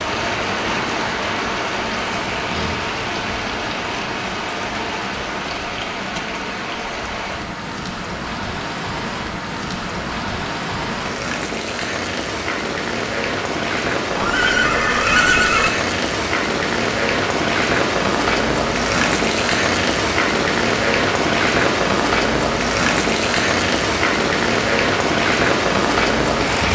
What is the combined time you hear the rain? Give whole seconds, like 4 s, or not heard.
27 s.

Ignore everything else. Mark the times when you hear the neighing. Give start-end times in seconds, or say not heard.
14.2-15.7.